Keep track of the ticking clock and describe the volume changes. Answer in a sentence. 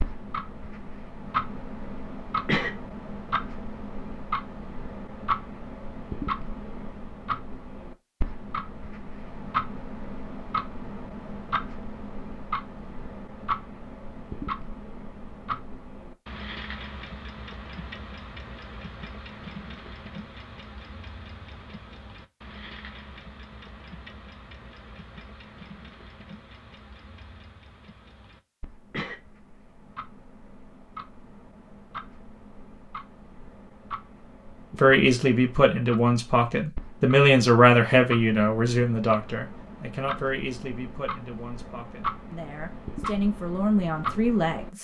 The loudness of the ticking clock goes down, then up.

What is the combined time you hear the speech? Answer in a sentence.
You can hear the speech for 10 seconds altogether.